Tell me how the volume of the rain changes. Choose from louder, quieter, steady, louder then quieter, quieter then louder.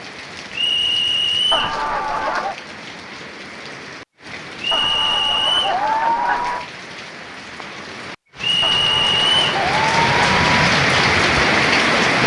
louder.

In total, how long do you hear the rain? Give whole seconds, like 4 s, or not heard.
12 s.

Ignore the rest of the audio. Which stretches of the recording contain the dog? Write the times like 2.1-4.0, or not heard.
not heard.